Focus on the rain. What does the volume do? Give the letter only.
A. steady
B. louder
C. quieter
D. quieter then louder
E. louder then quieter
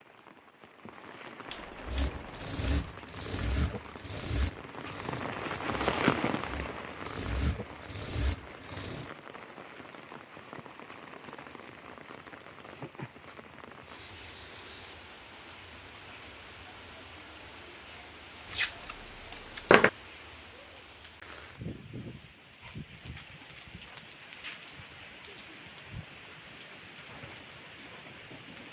C.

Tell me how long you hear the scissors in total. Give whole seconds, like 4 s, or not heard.
3 s.